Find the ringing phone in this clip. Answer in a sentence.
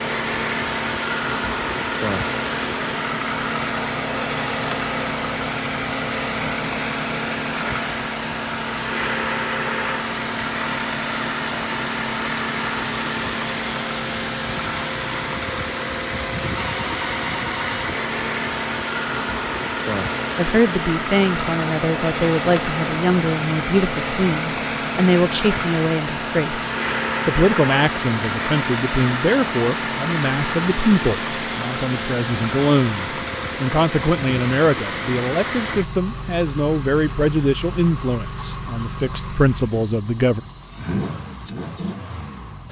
You can hear the ringing phone from 16.6 to 17.9 s.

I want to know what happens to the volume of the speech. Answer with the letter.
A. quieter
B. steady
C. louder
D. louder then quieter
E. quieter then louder
B.